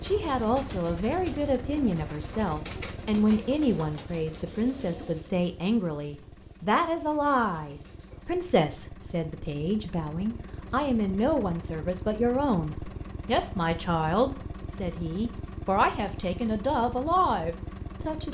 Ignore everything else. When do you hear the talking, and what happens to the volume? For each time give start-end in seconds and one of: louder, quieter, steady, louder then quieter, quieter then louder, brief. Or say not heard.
0.0-18.2 steady.